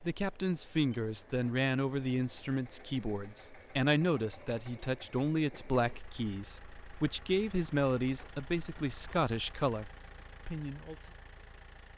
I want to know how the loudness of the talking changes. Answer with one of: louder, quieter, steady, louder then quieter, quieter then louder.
steady.